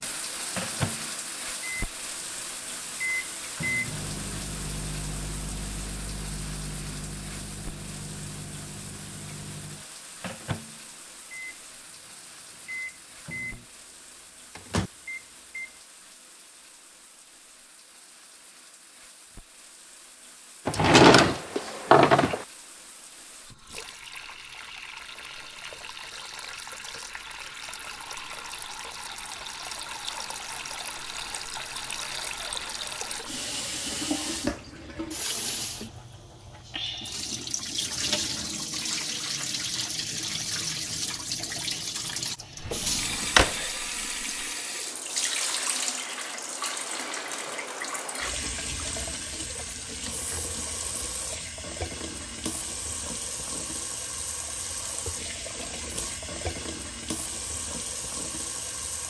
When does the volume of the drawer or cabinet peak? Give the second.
21 s.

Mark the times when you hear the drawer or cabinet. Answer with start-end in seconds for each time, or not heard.
20.6-22.4, 42.6-43.5.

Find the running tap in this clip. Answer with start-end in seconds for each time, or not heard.
0.0-59.0.